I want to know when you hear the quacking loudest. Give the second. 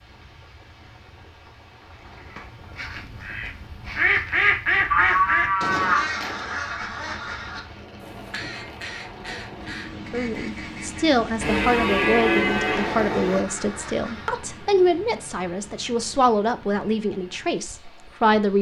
5 s.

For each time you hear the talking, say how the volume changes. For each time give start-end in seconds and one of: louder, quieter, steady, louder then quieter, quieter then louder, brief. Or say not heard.
10.1-18.5 steady.